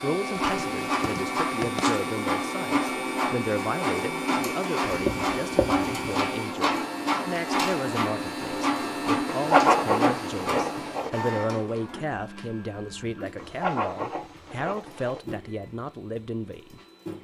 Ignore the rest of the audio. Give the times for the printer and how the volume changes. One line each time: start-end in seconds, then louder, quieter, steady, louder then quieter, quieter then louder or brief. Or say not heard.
0.0-17.2 quieter.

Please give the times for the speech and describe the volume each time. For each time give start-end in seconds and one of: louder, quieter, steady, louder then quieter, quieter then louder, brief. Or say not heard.
0.0-17.2 steady.